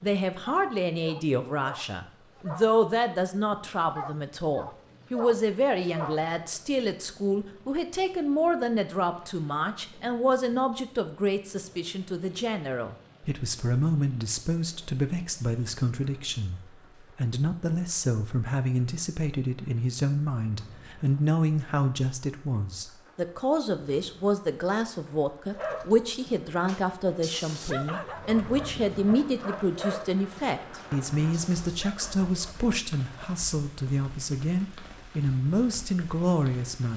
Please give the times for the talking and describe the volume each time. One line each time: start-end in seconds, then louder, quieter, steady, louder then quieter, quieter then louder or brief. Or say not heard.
0.0-36.9 steady.